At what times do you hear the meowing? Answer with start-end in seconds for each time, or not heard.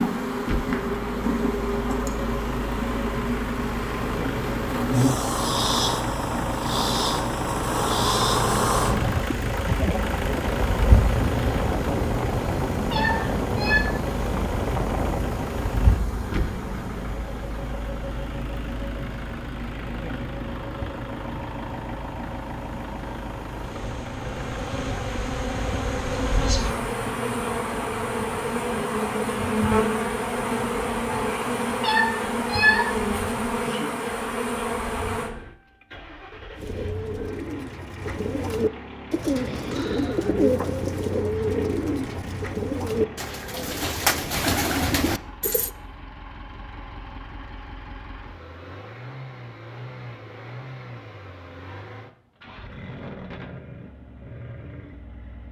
12.9-13.8, 31.8-32.9.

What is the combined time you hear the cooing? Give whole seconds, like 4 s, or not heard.
9 s.